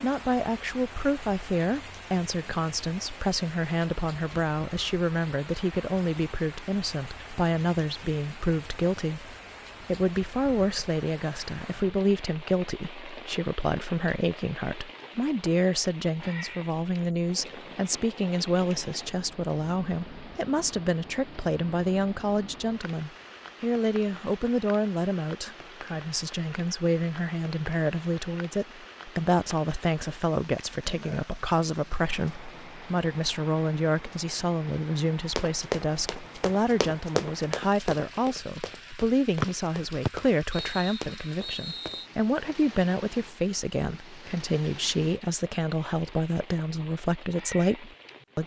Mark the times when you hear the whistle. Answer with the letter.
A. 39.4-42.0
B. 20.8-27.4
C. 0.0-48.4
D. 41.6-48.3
A.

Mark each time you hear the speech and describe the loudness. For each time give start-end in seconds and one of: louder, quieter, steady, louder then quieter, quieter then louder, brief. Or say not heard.
0.0-48.4 steady.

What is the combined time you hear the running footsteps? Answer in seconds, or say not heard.
7 s.